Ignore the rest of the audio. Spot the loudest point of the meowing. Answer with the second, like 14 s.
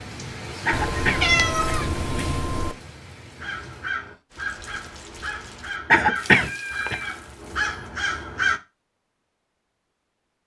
1 s.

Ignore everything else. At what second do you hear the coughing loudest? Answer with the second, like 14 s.
6 s.